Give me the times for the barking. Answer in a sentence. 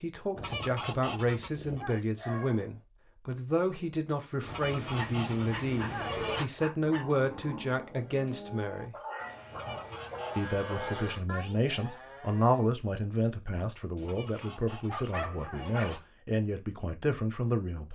You can hear the barking from 1.6 to 2.8 s, from 5.0 to 7.0 s, from 8.9 to 11.1 s and from 13.9 to 16.0 s.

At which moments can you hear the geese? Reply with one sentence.
The geese can be heard from 0.3 to 2.0 s, from 4.5 to 6.5 s, from 9.5 to 11.1 s and from 14.0 to 16.0 s.